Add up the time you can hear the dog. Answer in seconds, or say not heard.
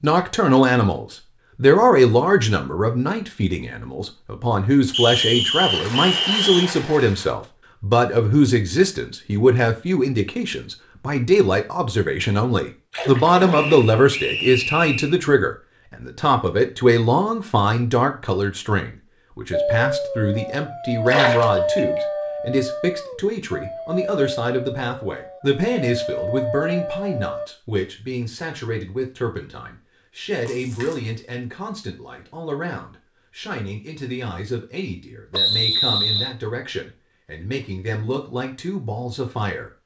8 s.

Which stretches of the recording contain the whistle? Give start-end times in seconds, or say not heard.
4.9-6.7, 13.5-15.2, 35.3-36.4.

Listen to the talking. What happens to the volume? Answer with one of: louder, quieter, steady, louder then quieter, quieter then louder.
quieter.